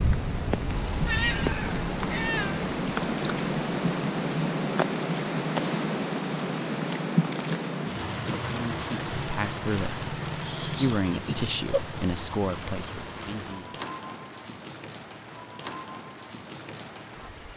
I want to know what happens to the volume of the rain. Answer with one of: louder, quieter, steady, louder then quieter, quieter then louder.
quieter.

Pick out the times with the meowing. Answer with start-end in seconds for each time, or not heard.
0.7-2.6, 10.4-11.8.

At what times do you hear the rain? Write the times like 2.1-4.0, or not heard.
0.0-17.5.